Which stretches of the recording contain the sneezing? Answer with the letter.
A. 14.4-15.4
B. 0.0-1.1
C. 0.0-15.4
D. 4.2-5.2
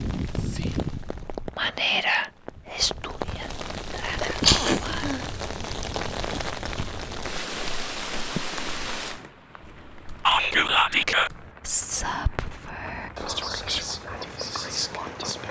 D.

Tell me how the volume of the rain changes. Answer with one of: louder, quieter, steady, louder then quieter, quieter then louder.
quieter then louder.